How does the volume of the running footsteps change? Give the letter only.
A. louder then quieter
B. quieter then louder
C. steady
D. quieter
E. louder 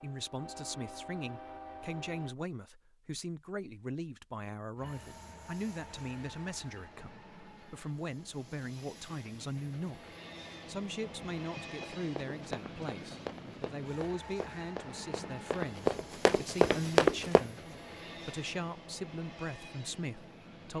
E.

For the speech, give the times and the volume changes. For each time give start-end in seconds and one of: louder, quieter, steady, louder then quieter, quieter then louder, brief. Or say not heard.
0.0-10.1 steady
10.7-20.7 steady.